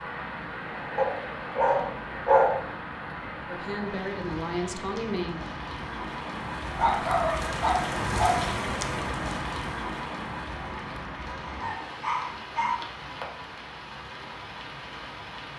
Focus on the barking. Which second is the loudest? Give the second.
2 s.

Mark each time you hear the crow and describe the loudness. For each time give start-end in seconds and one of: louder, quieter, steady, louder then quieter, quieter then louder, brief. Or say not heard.
not heard.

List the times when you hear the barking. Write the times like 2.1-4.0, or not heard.
0.9-2.6, 6.8-8.5, 11.3-12.8.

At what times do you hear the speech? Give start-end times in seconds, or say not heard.
3.5-5.4.